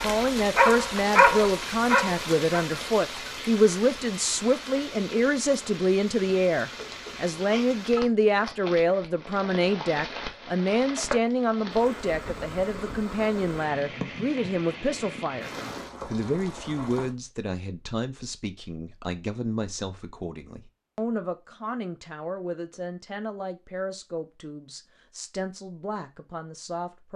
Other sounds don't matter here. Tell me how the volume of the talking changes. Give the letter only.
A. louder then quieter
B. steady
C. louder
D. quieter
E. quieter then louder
D.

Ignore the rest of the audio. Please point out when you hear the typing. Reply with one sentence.
You can't hear the typing here.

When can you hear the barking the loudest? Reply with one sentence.
The volume of the barking peaks at 1 second.